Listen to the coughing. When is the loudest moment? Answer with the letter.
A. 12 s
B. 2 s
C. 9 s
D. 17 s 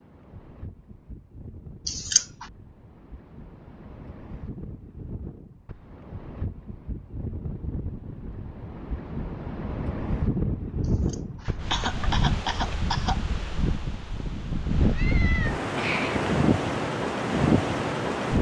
B.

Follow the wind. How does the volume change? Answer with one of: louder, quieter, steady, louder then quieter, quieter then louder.
louder.